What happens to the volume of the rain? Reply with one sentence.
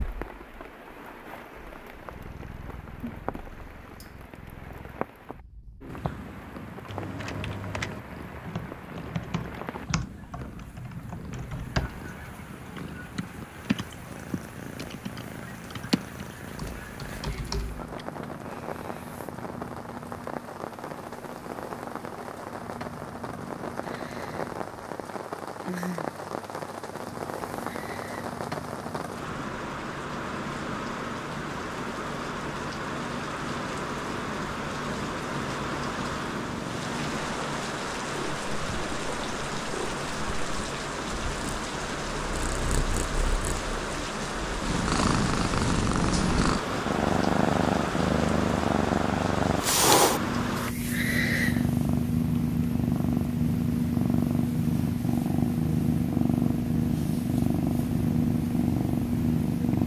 The loudness of the rain goes up.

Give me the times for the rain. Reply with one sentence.
You can hear the rain from 0.0 to 50.8 s.